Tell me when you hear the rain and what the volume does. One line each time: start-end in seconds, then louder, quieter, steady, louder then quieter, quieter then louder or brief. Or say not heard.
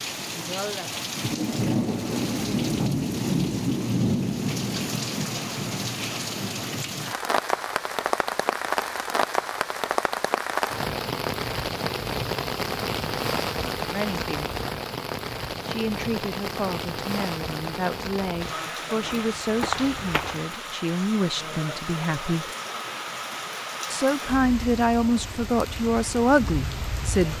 0.0-27.3 quieter.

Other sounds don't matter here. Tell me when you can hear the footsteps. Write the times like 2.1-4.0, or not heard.
19.0-20.5.